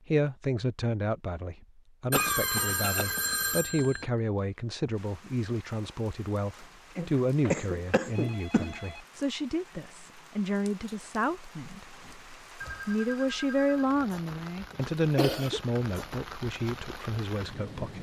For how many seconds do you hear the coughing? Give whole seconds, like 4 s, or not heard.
4 s.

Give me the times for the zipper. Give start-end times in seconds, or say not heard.
not heard.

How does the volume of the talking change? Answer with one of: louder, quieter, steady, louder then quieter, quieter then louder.
steady.